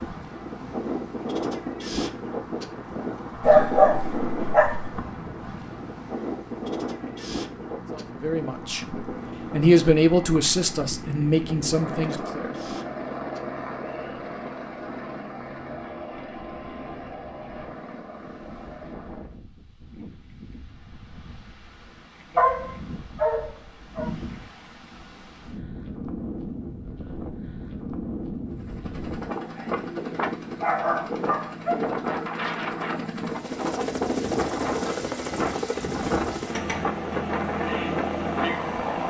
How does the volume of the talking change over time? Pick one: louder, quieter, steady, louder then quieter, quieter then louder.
louder then quieter.